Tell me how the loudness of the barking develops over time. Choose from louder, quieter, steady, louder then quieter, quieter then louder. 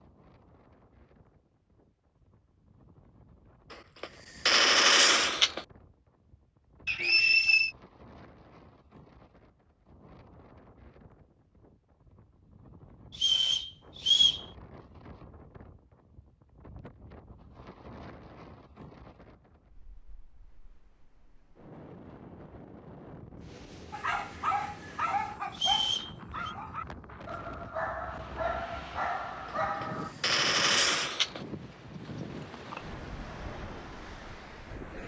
quieter then louder.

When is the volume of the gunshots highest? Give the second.
5 s.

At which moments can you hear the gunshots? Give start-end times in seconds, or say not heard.
3.7-5.7, 29.5-31.4.